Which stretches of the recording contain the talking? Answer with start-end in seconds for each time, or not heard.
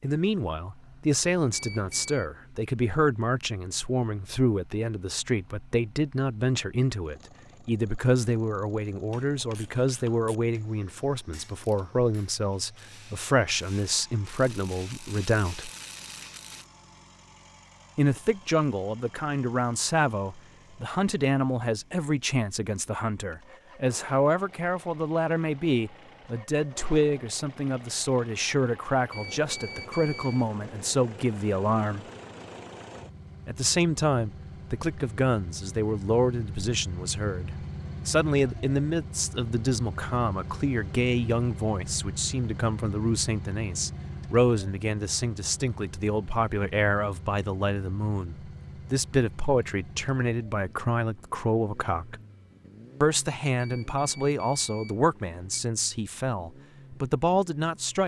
0.0-15.7, 17.9-32.0, 33.5-52.2, 53.0-58.0.